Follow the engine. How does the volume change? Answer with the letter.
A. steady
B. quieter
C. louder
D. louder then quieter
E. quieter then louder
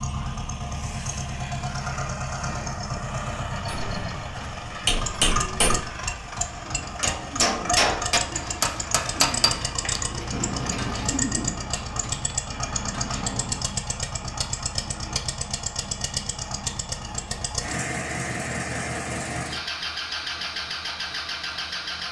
A.